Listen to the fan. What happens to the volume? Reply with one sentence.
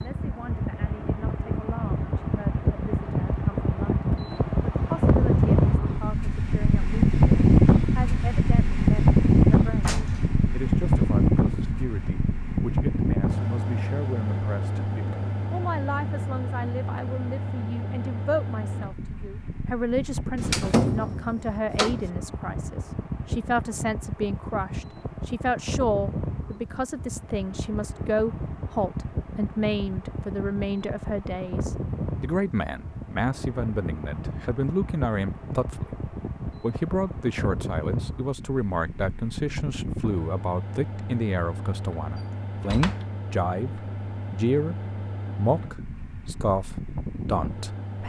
The loudness of the fan goes down.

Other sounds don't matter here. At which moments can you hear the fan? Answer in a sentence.
You can hear the fan from 0.0 to 48.0 s.